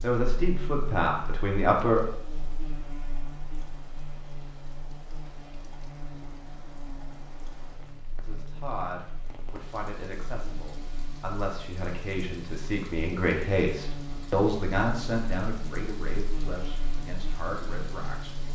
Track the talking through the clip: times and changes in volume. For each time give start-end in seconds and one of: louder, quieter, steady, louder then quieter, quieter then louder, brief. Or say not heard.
0.0-2.0 brief
8.2-18.3 louder then quieter.